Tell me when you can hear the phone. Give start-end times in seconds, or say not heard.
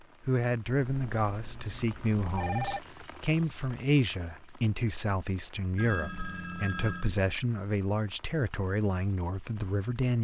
0.8-2.8, 5.8-7.1.